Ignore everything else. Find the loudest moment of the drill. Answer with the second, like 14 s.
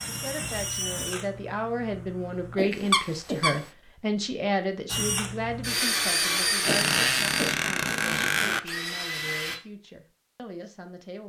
6 s.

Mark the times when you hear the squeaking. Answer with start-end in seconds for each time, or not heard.
2.7-3.6, 6.6-8.6.